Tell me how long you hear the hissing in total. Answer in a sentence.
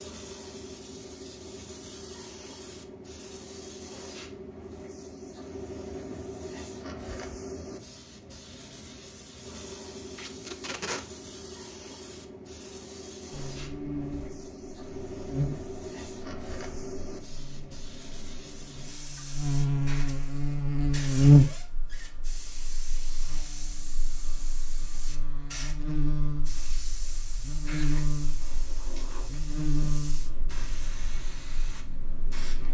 You can hear the hissing for 33 seconds altogether.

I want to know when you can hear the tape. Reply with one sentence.
The tape can be heard from 10.2 to 11.1 s.